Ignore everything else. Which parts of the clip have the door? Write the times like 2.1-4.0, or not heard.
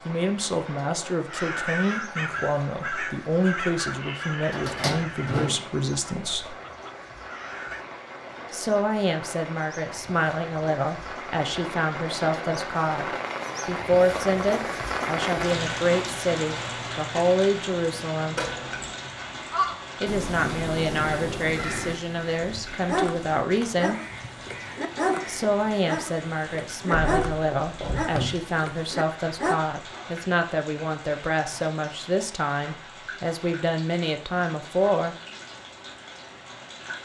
4.5-6.2, 18.4-18.9, 26.9-28.5.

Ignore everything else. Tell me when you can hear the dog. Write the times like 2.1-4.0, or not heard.
22.9-29.6.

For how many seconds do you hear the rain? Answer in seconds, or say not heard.
37 s.